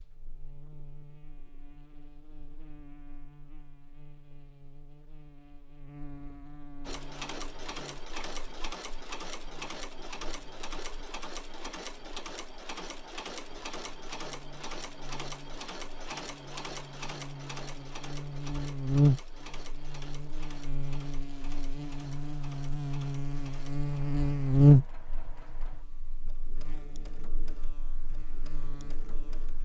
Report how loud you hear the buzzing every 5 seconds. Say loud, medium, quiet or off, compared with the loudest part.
quiet, quiet, quiet, medium, loud, quiet.